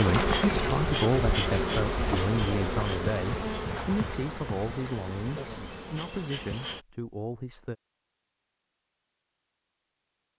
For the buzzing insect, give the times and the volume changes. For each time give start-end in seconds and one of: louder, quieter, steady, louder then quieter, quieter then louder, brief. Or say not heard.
0.0-6.8 quieter.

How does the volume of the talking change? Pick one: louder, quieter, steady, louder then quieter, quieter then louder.
quieter.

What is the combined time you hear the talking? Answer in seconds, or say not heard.
8 s.